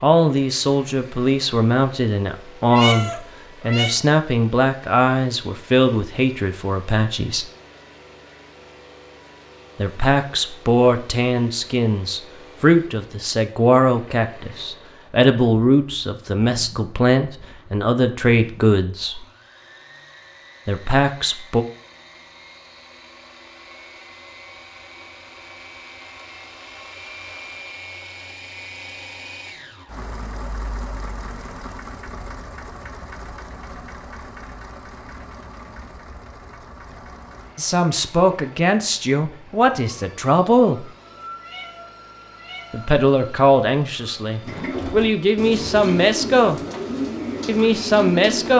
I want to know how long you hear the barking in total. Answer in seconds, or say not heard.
not heard.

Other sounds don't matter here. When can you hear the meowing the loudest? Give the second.
3 s.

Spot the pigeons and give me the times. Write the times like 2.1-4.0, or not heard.
44.4-48.5.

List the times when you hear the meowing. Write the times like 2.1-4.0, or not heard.
2.6-4.0, 41.4-42.9.